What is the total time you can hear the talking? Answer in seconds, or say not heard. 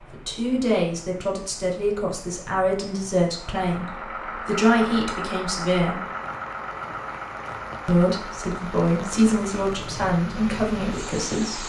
10 s.